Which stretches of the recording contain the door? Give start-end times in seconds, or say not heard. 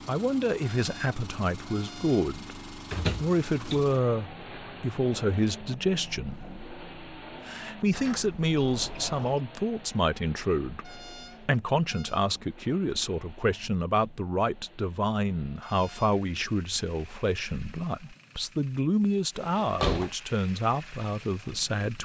2.9-3.9, 7.9-9.4, 19.4-20.1.